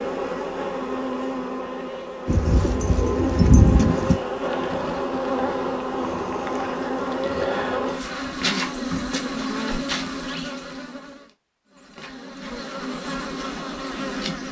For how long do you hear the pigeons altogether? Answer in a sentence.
You can hear the pigeons for 2 seconds altogether.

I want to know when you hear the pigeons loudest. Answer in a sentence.
The loudest moment of the pigeons is at 4 seconds.